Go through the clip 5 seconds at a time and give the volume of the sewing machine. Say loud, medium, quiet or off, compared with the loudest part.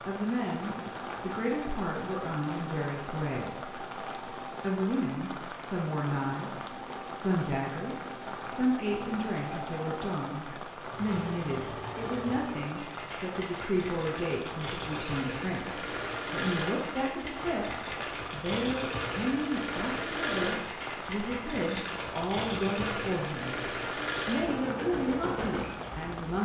medium, medium, medium, loud, loud, loud.